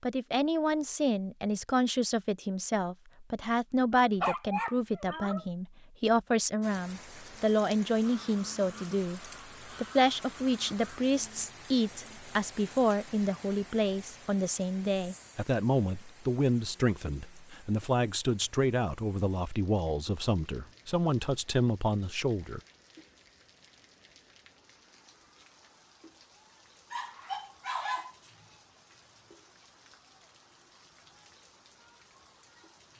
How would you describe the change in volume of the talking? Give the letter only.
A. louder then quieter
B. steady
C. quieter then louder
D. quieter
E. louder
B.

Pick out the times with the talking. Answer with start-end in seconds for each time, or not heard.
0.0-22.6.